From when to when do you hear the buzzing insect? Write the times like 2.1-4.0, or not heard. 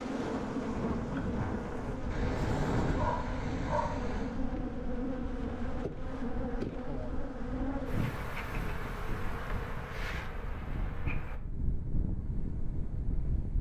0.0-11.4.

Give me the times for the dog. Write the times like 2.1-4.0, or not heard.
2.1-4.4.